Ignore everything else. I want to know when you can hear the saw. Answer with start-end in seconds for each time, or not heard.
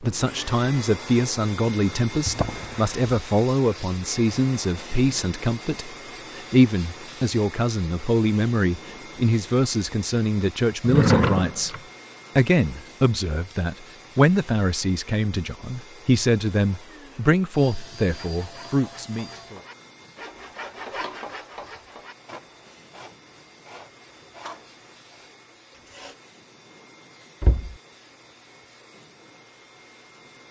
18.1-26.1.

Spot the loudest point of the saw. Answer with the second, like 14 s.
21 s.